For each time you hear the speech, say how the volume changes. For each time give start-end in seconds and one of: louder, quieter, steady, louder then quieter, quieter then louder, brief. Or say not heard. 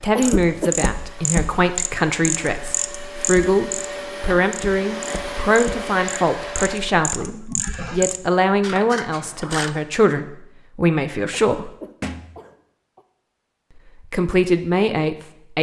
0.0-11.8 steady
14.1-15.5 brief.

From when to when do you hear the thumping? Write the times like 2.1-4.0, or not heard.
12.0-12.4.